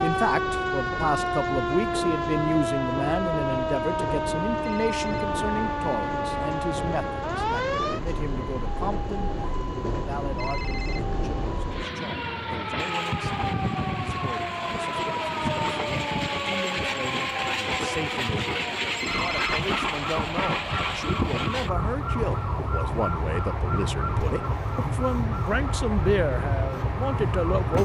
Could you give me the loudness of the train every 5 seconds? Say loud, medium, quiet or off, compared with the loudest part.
medium, medium, loud, loud, loud, loud.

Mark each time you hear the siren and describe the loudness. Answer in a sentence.
You can hear the siren from 0.0 to 27.7 s, getting quieter.